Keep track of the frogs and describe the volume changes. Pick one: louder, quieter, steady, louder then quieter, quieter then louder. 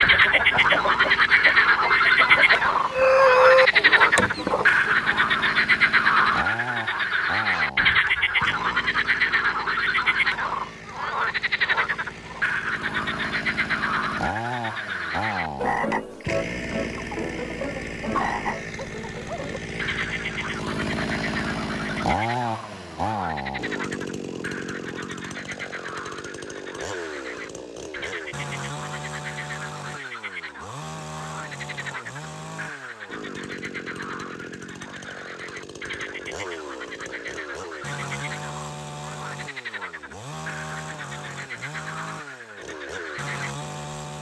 quieter.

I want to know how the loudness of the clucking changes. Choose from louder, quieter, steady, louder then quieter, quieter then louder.
louder then quieter.